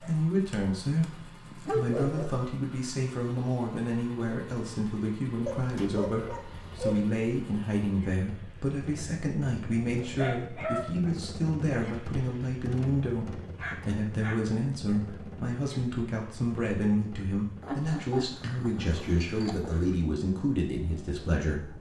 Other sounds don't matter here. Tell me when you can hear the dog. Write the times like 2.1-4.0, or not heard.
0.0-2.3, 5.5-7.0, 9.7-11.2, 13.6-14.4, 17.6-19.9.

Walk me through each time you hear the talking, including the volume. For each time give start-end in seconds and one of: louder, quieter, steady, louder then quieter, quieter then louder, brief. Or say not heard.
0.0-21.7 steady.